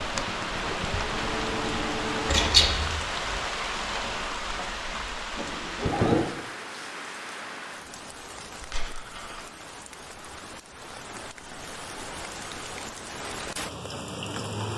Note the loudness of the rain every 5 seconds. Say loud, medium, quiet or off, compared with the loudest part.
loud, medium, medium.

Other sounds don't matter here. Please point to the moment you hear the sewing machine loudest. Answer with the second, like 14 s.
6 s.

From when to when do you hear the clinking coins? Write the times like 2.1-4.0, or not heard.
2.2-3.0, 8.6-9.4.